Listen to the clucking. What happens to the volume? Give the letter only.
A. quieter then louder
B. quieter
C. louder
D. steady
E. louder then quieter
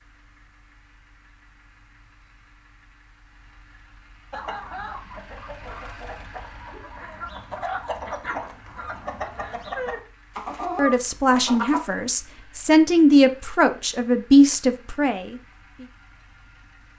C.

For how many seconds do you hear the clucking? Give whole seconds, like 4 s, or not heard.
8 s.